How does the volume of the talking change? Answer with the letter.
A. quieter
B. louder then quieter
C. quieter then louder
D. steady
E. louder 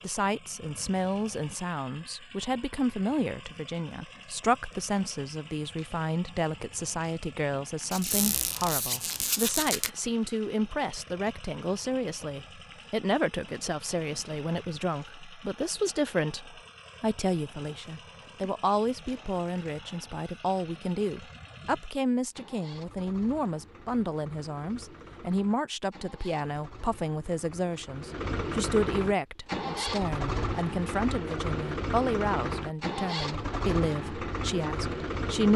D.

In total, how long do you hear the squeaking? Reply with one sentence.
You can hear the squeaking for 2 seconds altogether.